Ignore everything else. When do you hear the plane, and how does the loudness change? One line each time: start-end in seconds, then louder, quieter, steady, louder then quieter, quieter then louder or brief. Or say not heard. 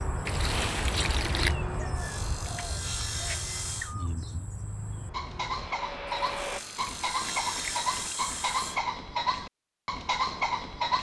0.0-6.6 quieter then louder.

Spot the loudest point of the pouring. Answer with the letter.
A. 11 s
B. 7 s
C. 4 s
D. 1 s
D.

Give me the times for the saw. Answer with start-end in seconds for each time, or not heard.
1.9-4.0, 6.3-8.9.